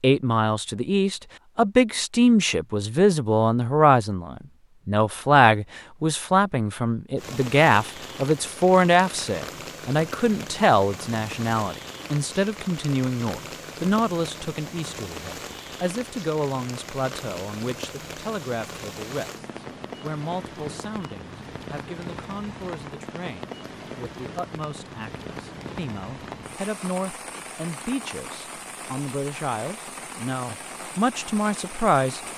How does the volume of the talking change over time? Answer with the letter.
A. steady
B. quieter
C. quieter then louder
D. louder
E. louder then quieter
C.